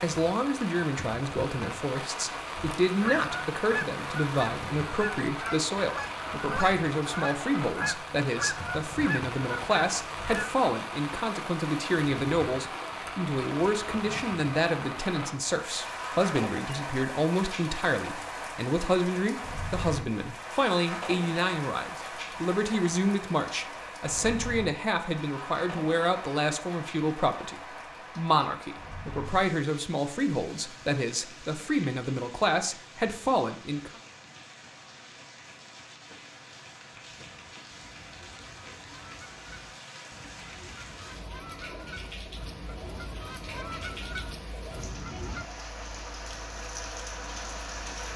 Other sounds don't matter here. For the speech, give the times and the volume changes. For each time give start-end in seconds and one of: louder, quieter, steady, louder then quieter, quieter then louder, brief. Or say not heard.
0.0-33.9 steady.